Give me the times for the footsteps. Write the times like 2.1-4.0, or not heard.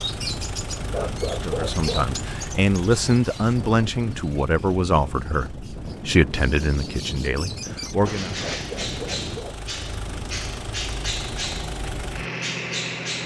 not heard.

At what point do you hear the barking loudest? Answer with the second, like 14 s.
1 s.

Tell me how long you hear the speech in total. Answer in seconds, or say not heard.
7 s.